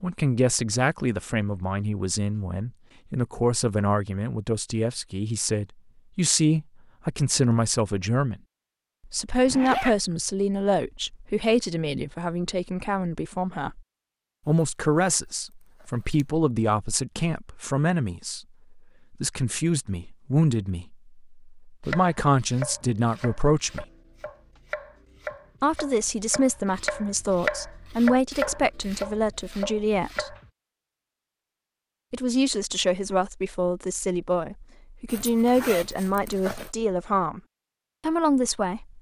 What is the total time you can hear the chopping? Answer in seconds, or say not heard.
9 s.